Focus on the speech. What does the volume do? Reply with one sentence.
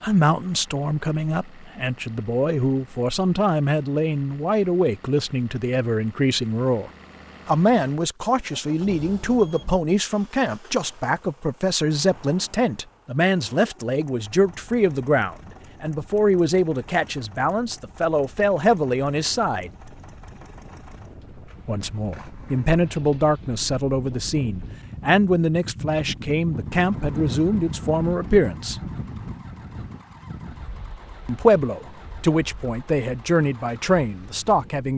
The volume of the speech stays about the same.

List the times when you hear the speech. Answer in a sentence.
You can hear the speech from 0.0 to 19.7 s, from 21.6 to 28.8 s and from 31.2 to 34.9 s.